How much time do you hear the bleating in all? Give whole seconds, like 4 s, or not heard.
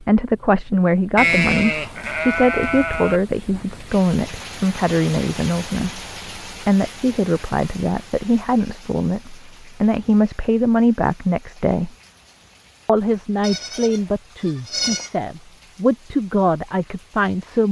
4 s.